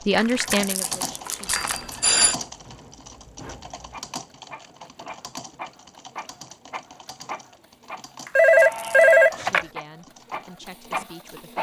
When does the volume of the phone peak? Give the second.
9 s.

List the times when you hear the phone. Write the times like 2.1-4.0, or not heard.
1.4-2.4, 8.3-9.7.